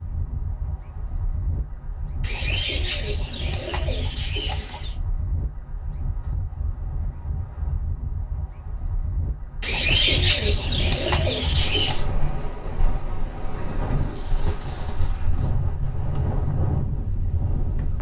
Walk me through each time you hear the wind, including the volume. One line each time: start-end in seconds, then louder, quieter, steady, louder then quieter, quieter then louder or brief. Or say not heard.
0.0-17.9 louder.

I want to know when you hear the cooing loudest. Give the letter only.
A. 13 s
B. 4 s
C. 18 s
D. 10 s
D.